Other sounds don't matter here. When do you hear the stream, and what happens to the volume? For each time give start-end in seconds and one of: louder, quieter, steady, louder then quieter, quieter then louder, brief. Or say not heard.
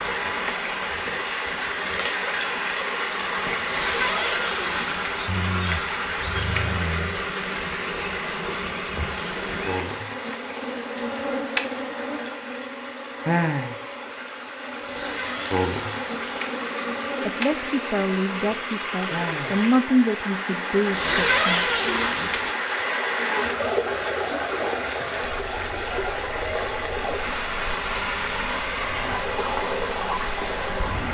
0.0-31.0 quieter then louder.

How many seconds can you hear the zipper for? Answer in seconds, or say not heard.
5 s.